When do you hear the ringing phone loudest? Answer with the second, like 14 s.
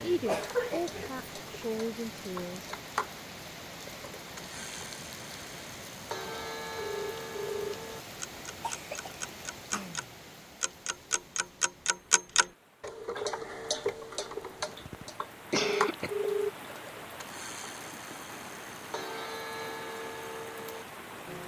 16 s.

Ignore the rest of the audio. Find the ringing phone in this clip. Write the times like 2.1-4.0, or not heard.
6.8-7.8, 15.5-16.5.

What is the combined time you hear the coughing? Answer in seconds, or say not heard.
4 s.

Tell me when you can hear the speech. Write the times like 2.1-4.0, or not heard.
0.0-2.7.